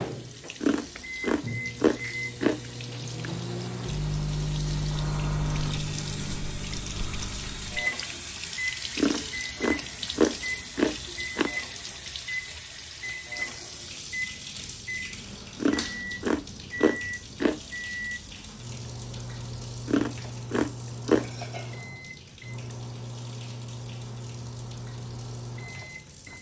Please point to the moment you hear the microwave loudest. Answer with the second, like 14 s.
5 s.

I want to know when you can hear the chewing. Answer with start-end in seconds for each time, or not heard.
0.6-2.6, 8.9-11.5, 15.6-17.6, 19.9-21.3.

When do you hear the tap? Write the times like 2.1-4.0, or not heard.
0.0-26.3.